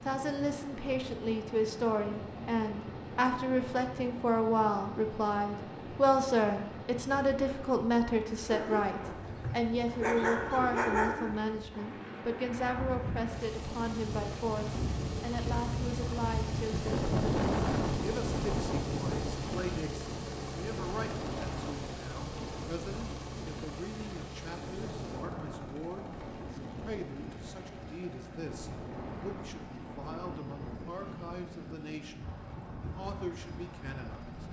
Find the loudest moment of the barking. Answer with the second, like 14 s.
11 s.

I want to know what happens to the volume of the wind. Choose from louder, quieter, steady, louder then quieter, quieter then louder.
louder then quieter.